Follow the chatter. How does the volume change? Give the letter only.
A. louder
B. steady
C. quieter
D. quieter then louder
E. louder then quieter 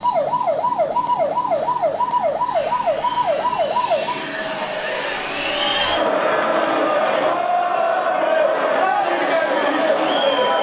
A.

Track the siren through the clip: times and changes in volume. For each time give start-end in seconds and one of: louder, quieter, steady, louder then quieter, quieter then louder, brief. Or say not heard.
0.0-4.3 steady.